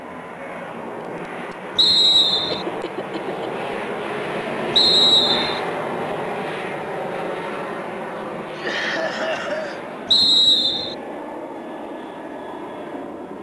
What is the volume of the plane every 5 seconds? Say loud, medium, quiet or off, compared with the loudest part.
loud, loud, medium.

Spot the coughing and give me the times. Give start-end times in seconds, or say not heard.
2.5-3.5, 8.5-9.8.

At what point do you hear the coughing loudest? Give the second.
9 s.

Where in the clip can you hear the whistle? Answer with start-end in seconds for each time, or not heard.
1.8-2.6, 4.8-5.6, 10.1-10.9.